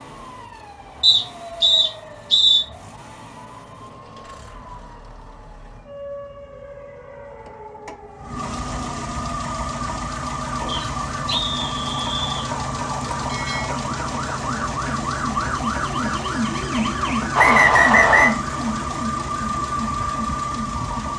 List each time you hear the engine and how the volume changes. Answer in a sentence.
You can hear the engine from 0.0 to 21.1 s, getting louder.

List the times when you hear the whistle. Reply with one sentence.
You can hear the whistle from 1.0 to 2.6 s, from 10.7 to 12.5 s and from 17.4 to 18.4 s.